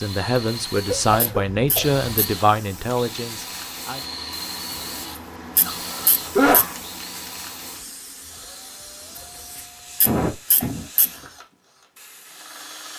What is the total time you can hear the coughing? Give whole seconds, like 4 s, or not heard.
3 s.